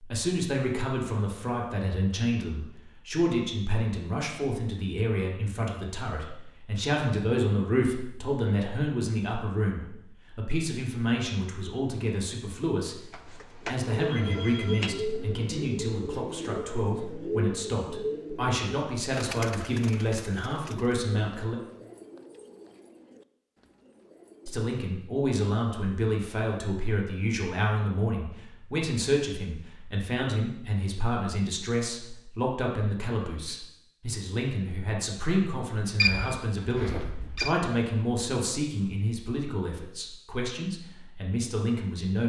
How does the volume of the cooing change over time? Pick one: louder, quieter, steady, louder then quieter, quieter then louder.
quieter.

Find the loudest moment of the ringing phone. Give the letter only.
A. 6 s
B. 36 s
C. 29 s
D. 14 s
B.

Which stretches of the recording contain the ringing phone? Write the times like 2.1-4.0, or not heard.
13.1-15.0, 36.0-37.5.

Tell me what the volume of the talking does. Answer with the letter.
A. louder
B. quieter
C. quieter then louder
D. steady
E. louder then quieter
D.